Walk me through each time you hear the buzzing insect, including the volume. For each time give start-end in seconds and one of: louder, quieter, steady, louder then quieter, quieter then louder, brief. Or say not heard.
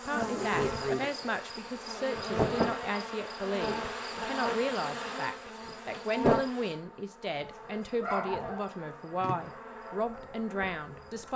0.0-11.3 quieter.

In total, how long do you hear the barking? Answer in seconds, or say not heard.
2 s.